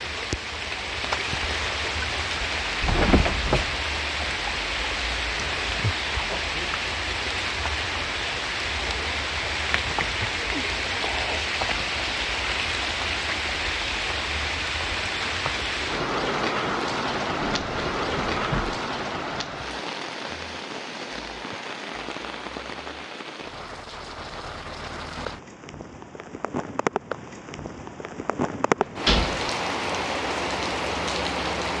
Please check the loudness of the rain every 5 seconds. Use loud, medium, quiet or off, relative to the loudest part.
loud, loud, loud, loud, medium, loud, loud.